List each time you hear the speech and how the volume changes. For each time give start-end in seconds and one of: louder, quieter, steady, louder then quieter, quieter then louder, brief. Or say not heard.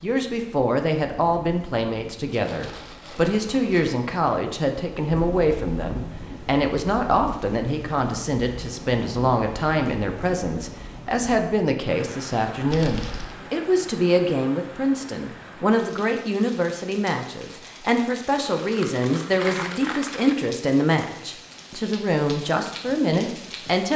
0.0-23.9 steady.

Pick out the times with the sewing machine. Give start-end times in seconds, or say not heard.
not heard.